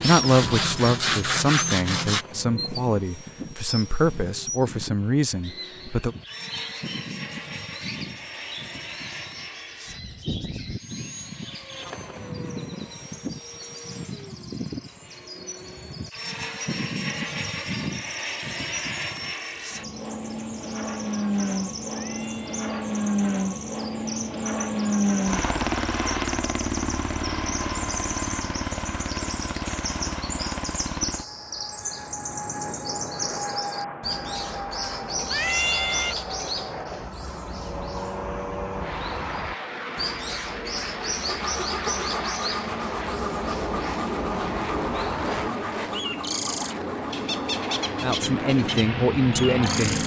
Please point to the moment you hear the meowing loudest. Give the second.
36 s.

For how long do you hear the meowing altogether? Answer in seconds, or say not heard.
2 s.